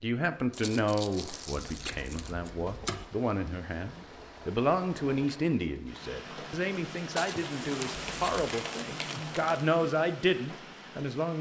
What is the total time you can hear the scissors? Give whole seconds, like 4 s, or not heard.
2 s.